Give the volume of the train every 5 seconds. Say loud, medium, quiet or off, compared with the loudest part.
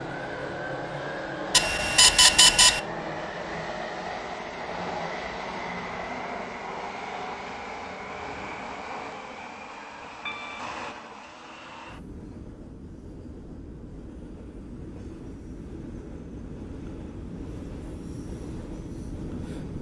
loud, loud, medium, medium.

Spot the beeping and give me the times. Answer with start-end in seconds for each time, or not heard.
1.5-2.8.